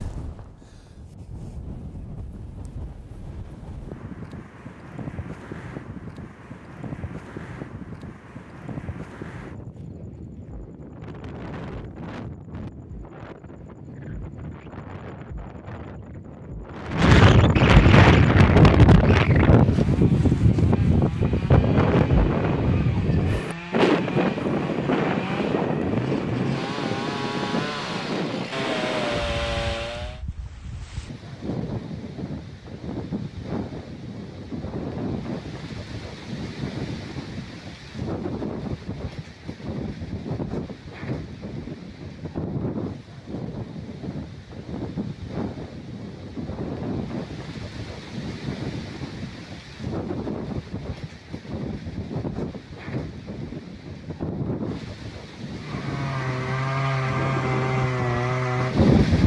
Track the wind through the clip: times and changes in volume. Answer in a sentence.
You can hear the wind from 0.0 to 59.2 s, getting louder then quieter.